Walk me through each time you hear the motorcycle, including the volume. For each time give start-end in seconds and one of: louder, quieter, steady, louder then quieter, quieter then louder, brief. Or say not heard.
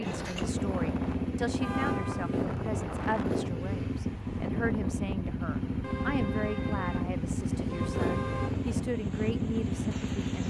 0.0-10.4 steady.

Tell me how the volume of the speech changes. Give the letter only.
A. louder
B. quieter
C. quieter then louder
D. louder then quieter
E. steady
E.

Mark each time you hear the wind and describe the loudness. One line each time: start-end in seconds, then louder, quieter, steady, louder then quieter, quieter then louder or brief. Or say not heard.
0.0-10.4 steady.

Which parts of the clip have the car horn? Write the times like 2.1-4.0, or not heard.
1.6-2.4, 5.8-8.6.